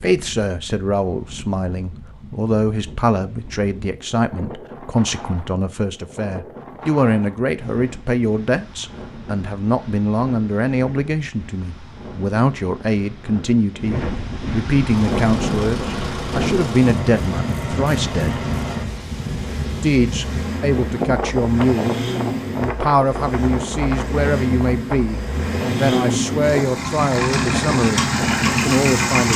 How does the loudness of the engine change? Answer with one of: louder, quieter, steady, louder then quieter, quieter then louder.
louder.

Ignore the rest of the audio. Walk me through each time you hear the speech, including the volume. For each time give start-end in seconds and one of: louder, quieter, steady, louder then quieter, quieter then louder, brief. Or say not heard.
0.0-18.4 steady
19.8-21.9 brief
22.6-29.3 steady.